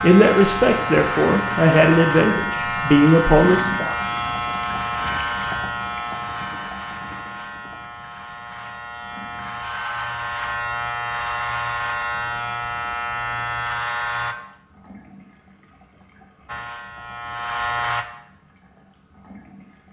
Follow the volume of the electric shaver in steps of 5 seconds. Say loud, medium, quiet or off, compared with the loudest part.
loud, medium, loud, loud.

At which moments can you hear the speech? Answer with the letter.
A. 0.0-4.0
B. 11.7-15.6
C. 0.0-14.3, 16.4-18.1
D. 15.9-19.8
A.